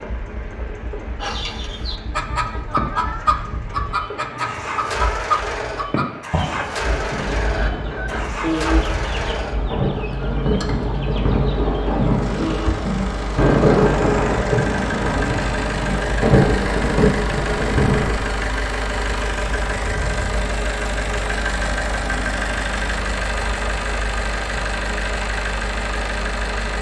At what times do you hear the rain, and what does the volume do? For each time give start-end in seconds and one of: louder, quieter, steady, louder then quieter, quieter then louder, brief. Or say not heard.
0.0-18.1 louder.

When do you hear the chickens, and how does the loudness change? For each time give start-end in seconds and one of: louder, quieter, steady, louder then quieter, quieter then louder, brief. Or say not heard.
1.2-12.8 quieter.